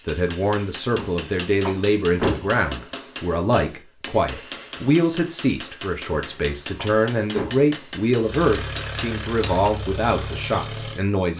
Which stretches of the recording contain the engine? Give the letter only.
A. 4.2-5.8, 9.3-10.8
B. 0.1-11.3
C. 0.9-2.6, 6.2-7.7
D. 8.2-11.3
D.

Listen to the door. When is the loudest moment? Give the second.
2 s.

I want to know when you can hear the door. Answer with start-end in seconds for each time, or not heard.
0.9-2.6, 6.2-7.7.